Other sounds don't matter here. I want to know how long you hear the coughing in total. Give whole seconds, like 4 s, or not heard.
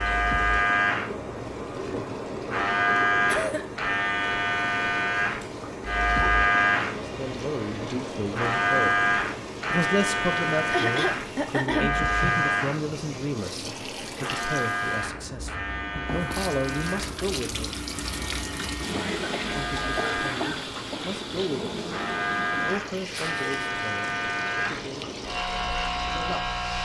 4 s.